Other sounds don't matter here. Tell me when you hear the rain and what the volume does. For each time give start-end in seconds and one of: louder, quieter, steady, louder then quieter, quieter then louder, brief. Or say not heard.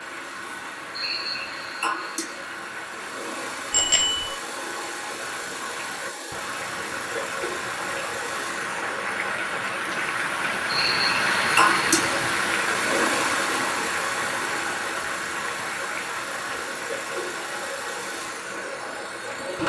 0.0-19.6 louder then quieter.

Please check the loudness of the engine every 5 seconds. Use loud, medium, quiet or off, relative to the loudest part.
medium, medium, loud, medium.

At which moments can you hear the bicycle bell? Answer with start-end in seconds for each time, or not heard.
3.7-4.3.